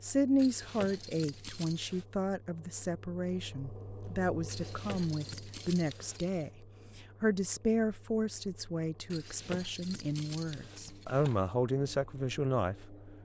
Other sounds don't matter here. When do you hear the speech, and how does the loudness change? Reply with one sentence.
The speech can be heard from 0.0 to 12.9 s, at a steady volume.